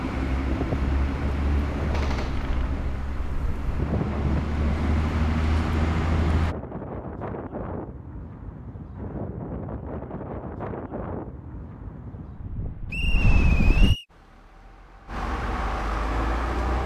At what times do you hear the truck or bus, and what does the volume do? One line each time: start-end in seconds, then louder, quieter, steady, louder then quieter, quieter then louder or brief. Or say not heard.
0.0-6.5 quieter then louder
14.1-16.8 brief.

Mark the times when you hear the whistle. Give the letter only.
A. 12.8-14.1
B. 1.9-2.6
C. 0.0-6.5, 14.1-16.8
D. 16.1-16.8
A.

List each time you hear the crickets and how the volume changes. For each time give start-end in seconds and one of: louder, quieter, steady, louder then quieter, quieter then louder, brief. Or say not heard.
not heard.